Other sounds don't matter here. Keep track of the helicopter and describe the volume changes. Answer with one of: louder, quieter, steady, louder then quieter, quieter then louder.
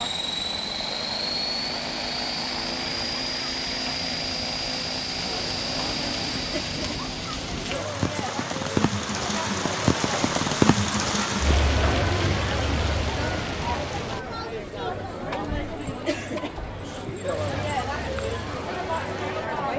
steady.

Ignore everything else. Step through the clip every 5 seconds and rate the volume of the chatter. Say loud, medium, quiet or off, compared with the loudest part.
off, medium, loud, loud.